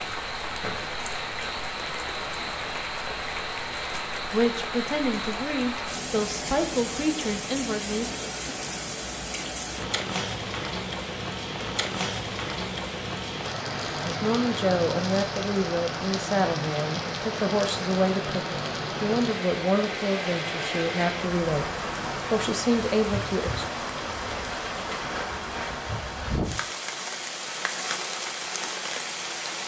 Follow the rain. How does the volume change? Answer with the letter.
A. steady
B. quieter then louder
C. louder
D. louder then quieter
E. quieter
A.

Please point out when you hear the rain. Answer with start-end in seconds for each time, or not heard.
0.0-29.6.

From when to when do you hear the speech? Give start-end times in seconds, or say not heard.
4.3-8.1, 14.1-21.6, 22.3-23.6.